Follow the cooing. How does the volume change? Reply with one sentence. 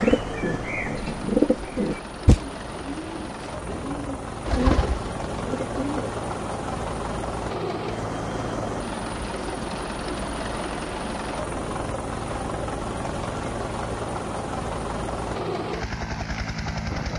The loudness of the cooing goes down, then up.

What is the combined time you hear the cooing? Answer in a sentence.
The cooing can be heard for 6 seconds in total.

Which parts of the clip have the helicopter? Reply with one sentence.
You can hear the helicopter from 0.0 to 17.1 s.